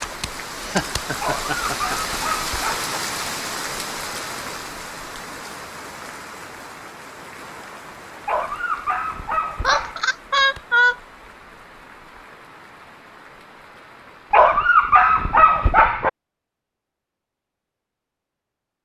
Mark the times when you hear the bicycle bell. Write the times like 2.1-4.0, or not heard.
not heard.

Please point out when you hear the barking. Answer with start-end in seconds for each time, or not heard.
1.2-3.0, 8.2-10.0, 14.3-16.1.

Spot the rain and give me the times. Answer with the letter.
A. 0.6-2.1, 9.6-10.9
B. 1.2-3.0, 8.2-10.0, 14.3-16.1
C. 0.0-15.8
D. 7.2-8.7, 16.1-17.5
C.